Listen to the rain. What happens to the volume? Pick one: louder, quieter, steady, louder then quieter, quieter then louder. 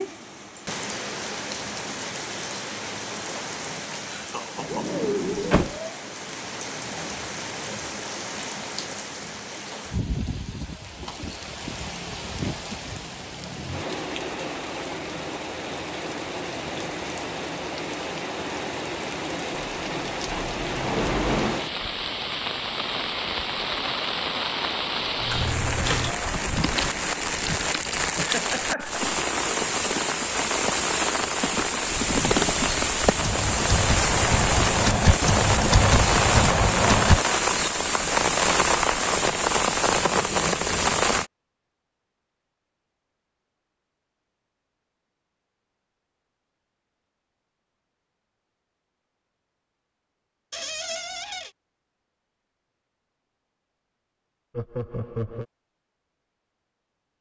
louder.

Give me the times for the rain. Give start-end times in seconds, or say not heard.
0.0-41.3.